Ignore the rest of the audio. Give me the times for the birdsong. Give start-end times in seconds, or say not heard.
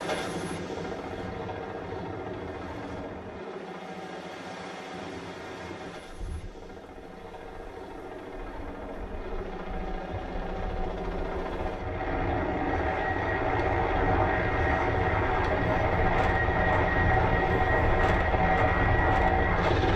not heard.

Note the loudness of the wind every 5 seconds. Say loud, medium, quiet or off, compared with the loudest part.
quiet, quiet, medium, loud.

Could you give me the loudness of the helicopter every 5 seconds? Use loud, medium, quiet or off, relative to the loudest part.
medium, quiet, loud, loud.